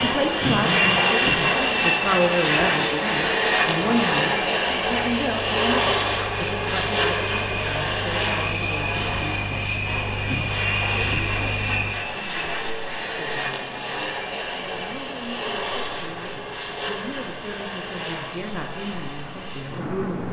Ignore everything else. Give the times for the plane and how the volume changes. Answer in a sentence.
You can hear the plane from 0.0 to 20.2 s, getting quieter.